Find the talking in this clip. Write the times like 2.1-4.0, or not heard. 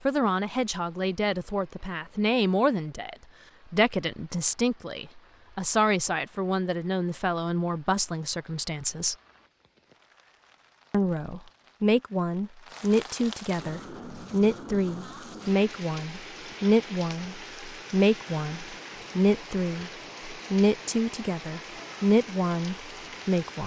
0.1-9.2, 10.9-23.6.